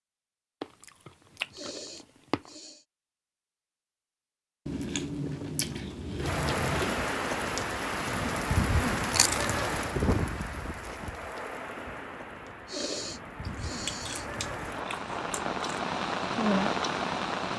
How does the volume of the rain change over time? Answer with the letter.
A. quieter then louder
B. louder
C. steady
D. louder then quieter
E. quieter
A.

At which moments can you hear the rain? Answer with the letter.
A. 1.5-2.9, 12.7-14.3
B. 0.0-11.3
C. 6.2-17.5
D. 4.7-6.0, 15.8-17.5
C.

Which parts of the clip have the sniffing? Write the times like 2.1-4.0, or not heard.
1.5-2.9, 12.7-14.3.